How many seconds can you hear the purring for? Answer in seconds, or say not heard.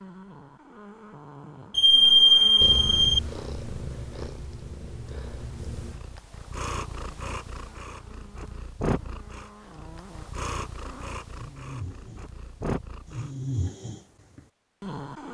11 s.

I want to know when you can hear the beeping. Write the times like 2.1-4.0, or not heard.
1.7-3.2.